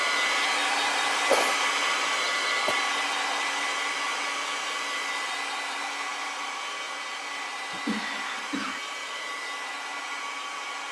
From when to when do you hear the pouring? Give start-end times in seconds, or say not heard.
not heard.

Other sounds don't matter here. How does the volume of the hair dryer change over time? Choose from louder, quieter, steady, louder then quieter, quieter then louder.
quieter.